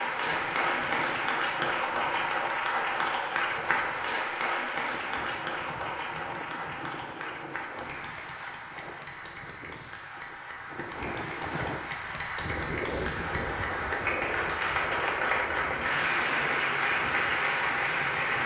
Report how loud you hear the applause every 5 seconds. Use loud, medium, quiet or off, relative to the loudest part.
loud, medium, medium, loud.